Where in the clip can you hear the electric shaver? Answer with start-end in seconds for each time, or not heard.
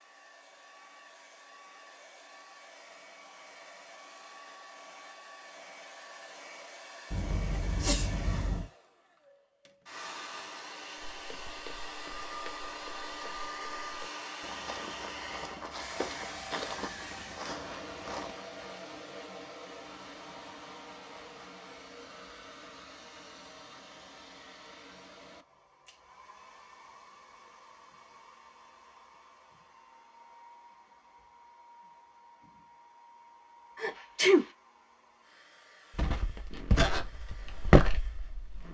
not heard.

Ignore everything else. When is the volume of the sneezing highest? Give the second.
34 s.